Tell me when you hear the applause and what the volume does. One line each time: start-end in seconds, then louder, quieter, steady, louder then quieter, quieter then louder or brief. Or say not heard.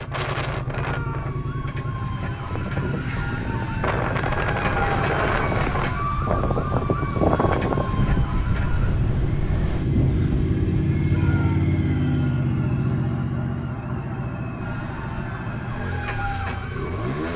not heard.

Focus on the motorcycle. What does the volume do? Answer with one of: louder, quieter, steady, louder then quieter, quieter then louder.
louder then quieter.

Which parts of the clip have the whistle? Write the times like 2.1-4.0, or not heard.
not heard.